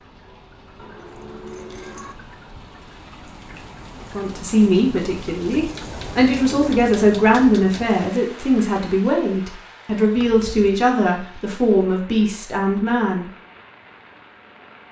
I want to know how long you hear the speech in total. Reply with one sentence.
You can hear the speech for 9 seconds altogether.